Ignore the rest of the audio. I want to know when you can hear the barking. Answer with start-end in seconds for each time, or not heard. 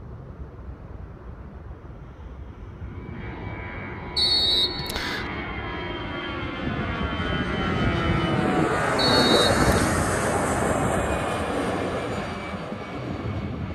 not heard.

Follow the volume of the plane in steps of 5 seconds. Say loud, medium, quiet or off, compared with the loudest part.
quiet, loud, loud.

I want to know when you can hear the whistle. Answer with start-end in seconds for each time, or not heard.
4.2-5.3, 8.9-9.9.